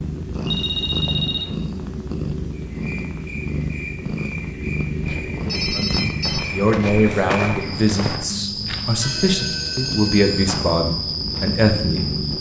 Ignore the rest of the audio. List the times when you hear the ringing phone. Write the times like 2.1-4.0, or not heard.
0.4-1.6, 5.5-6.5, 9.0-10.6.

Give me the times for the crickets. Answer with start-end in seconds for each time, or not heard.
2.5-12.3.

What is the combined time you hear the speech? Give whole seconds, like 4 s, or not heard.
6 s.